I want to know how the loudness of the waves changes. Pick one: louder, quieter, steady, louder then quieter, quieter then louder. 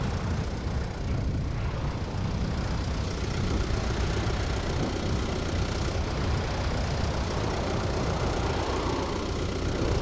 steady.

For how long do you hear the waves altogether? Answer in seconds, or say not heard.
10 s.